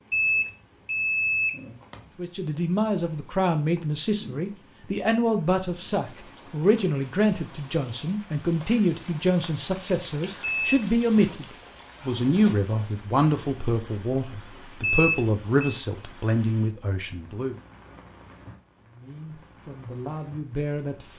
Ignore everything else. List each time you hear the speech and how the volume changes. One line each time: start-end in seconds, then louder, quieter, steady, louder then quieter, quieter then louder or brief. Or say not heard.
2.1-17.6 steady
18.9-21.1 brief.